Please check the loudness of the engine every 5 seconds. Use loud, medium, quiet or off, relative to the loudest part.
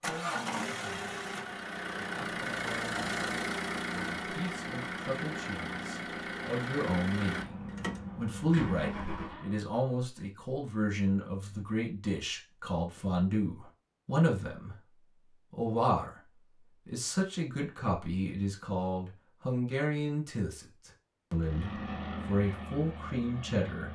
loud, loud, off, off, medium.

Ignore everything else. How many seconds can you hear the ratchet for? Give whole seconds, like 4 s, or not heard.
not heard.